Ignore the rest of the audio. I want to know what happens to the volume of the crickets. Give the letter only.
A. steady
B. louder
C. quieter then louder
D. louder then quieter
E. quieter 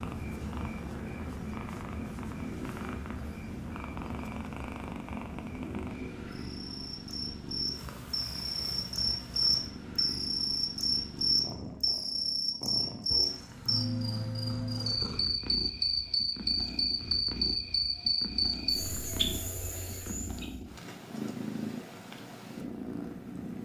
B.